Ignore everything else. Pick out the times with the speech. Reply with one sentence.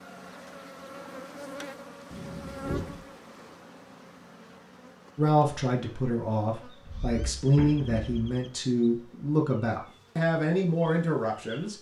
You can hear the speech from 5.2 to 11.7 s.